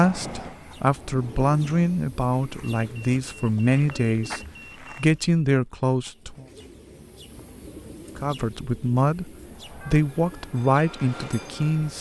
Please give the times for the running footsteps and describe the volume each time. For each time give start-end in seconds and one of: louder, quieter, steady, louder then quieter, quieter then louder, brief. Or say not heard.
not heard.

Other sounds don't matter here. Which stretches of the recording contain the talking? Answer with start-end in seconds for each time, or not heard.
0.0-6.5, 8.2-11.9.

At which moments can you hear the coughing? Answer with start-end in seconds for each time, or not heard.
not heard.